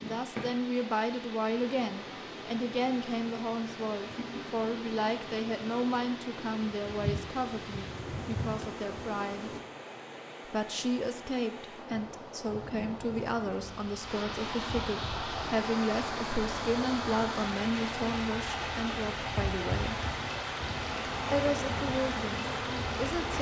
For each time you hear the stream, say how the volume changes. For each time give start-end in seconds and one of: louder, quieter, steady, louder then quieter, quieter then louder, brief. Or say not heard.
0.0-23.3 louder.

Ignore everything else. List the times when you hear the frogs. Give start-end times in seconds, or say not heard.
not heard.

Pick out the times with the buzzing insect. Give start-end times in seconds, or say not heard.
0.0-9.6, 11.9-23.3.